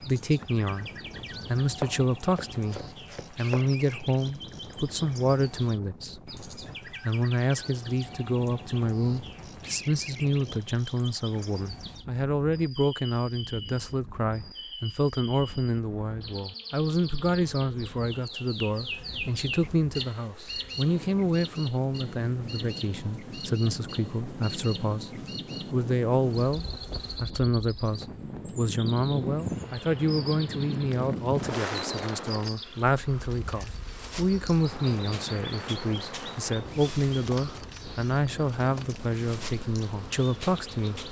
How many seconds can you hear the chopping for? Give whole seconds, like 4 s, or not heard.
2 s.